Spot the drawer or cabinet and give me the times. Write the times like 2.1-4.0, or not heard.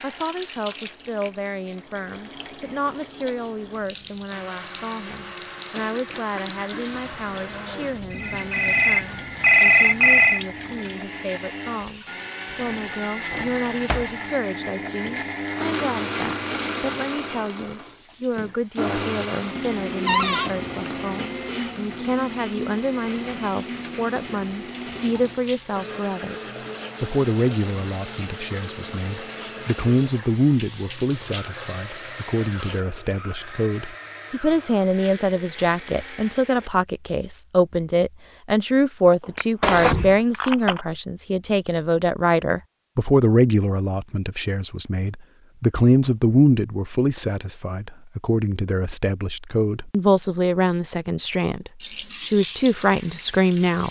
12.5-14.1, 20.1-20.5, 39.6-40.1.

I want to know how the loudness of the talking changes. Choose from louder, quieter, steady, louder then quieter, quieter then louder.
louder.